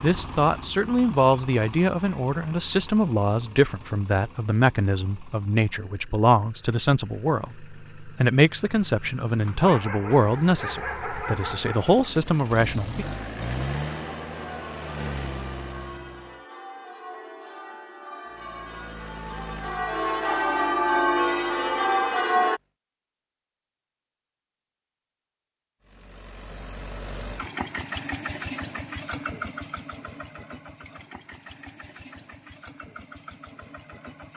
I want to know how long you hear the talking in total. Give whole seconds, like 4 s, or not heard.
13 s.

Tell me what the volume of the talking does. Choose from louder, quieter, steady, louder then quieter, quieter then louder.
steady.